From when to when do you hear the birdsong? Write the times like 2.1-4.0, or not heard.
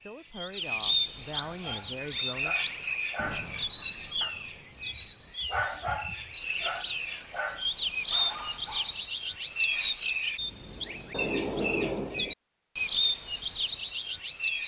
0.0-14.6.